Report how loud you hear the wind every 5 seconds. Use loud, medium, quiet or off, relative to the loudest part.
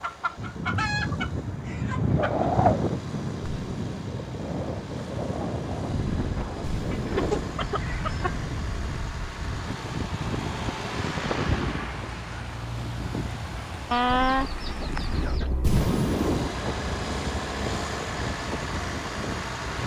loud, medium, medium, medium.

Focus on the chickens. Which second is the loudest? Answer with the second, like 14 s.
14 s.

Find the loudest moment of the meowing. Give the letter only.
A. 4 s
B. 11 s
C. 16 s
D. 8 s
C.